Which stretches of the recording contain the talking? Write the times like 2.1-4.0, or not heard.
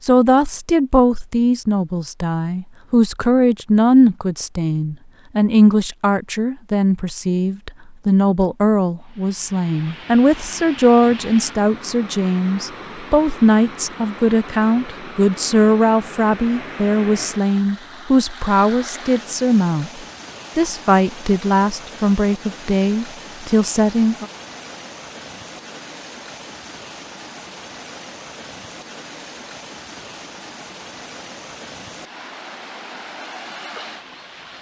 0.0-19.9, 20.6-24.2.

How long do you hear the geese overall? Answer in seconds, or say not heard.
not heard.